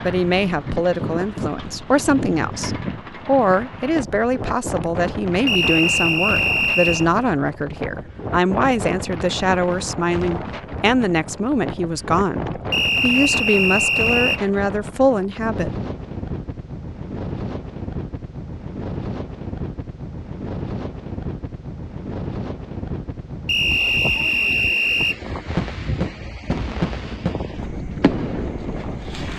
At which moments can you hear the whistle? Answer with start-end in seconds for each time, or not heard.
5.5-7.0, 12.7-14.4, 23.4-25.2.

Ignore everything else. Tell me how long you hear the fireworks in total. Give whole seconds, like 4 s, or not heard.
4 s.